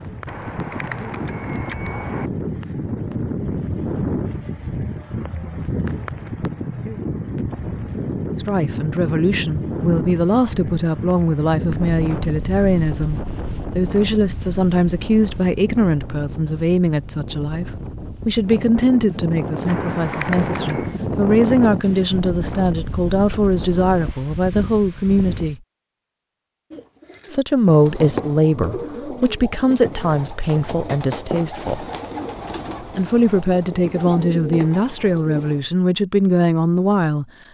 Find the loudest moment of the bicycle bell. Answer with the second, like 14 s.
20 s.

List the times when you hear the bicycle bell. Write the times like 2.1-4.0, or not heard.
0.2-2.3, 19.6-20.9.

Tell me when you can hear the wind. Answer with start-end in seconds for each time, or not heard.
0.0-25.6.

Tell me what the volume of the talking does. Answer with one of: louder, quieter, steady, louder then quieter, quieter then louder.
steady.